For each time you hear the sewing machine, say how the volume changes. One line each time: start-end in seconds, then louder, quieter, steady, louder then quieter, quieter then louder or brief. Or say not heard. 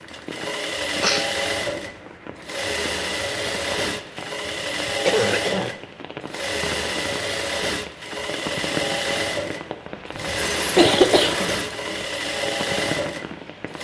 0.0-13.8 steady.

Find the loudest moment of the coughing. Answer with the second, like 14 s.
11 s.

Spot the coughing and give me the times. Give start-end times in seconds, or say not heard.
1.0-1.7, 5.0-5.8, 10.2-11.9.